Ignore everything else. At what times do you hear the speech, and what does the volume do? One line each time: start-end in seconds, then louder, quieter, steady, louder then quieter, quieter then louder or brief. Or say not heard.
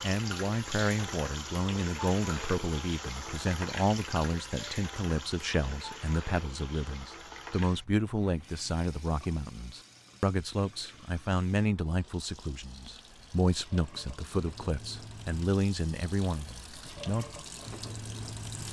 0.0-17.2 steady.